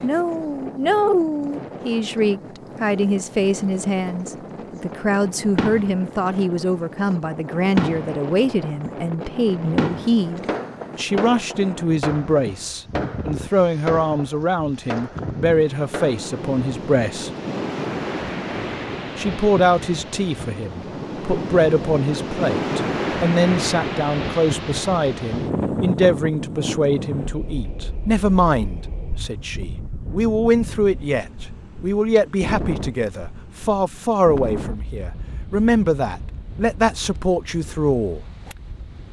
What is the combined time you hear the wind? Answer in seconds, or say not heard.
39 s.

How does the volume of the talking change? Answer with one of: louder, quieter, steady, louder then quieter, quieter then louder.
steady.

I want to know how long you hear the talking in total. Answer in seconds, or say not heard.
36 s.